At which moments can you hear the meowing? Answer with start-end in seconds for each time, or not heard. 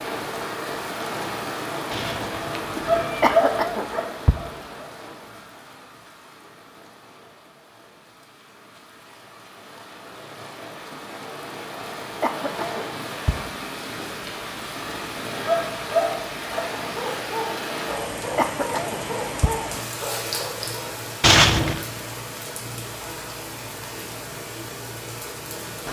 1.9-3.4, 21.2-21.9.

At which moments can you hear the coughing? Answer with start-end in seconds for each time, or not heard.
3.2-4.3, 12.2-13.3, 18.4-19.5.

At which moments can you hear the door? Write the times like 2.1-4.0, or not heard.
not heard.